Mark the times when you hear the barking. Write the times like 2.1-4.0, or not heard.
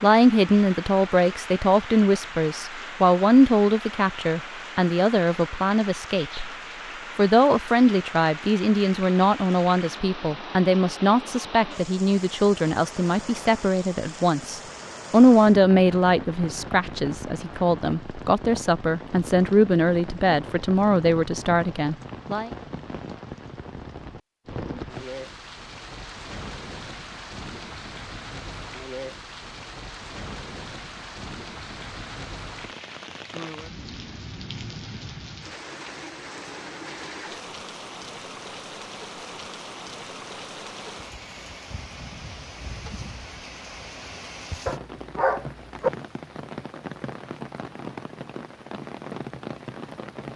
44.6-45.9.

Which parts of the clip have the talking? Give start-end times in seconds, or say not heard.
0.0-6.5, 7.2-22.5.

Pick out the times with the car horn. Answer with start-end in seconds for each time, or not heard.
not heard.